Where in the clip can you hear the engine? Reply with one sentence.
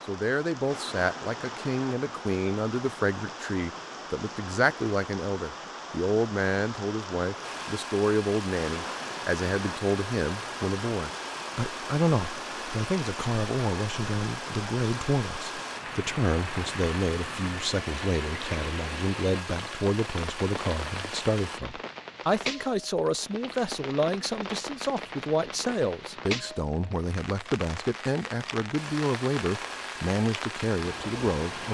The engine can be heard from 7.4 to 21.6 s and from 28.8 to 31.6 s.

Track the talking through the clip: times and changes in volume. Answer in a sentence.
The talking can be heard from 0.1 to 31.6 s, at a steady volume.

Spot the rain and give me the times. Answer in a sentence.
The rain can be heard from 0.0 to 31.6 s.